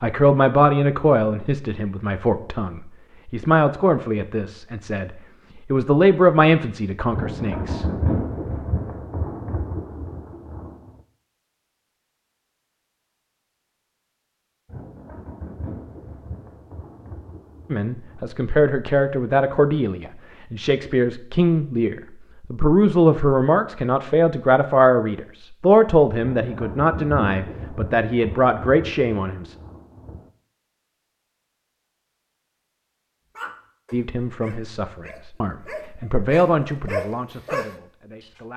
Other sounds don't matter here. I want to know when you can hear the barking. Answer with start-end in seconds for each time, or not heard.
33.4-37.8.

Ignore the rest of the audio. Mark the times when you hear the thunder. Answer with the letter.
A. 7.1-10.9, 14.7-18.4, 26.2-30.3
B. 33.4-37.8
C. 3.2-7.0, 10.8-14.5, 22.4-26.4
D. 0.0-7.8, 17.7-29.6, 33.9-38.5
A.